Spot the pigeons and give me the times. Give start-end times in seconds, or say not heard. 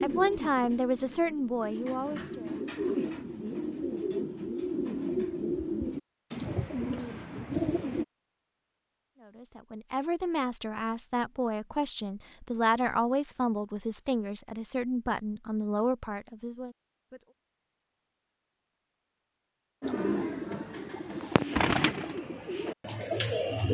0.0-8.1, 19.8-23.6.